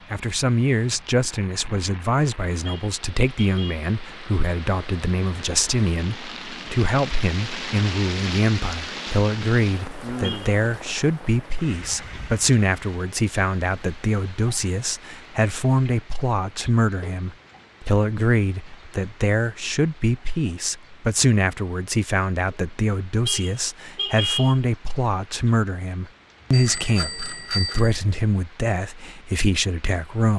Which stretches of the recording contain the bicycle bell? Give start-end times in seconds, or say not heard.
26.5-28.0.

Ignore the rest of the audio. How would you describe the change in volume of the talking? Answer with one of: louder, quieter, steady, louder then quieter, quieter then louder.
steady.